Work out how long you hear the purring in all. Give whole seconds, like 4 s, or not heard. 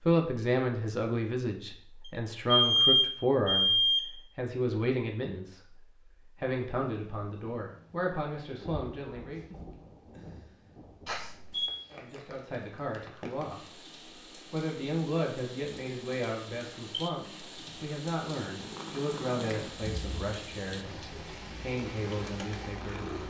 5 s.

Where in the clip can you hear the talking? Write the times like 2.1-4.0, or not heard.
0.0-9.4, 11.9-13.8, 14.5-23.1.